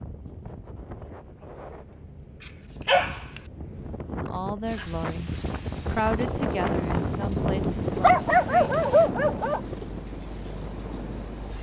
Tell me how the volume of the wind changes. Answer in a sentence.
The loudness of the wind goes up, then down.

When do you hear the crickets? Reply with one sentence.
You can hear the crickets from 4.7 to 11.5 s.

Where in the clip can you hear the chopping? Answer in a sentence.
You can't hear the chopping here.